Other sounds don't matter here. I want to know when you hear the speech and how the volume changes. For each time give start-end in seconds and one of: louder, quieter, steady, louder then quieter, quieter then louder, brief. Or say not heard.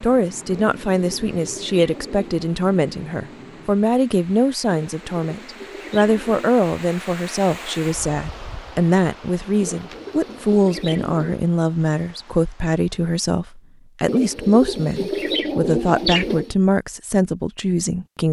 0.0-18.2 steady.